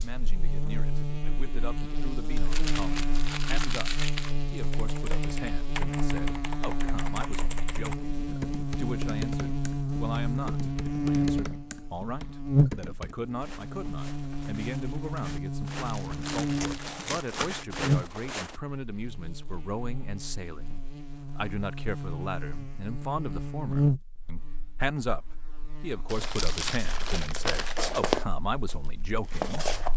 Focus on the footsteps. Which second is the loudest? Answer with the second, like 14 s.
28 s.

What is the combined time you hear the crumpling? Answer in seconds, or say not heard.
6 s.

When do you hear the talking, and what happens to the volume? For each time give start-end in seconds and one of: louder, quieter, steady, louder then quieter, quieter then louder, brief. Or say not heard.
0.0-29.6 louder.